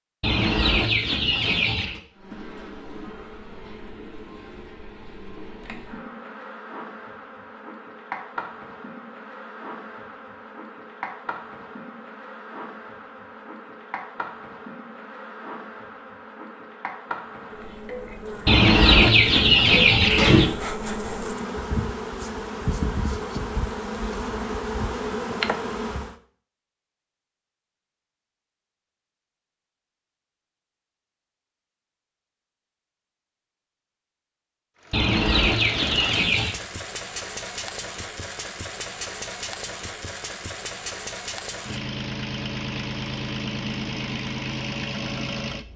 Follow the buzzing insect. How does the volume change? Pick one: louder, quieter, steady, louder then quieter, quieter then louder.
louder.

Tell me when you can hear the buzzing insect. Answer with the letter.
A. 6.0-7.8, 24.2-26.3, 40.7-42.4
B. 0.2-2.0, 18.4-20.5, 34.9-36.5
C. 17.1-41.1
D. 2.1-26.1
D.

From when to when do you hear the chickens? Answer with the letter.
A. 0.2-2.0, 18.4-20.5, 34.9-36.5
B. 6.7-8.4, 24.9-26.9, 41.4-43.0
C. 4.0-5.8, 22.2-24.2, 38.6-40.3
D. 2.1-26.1
A.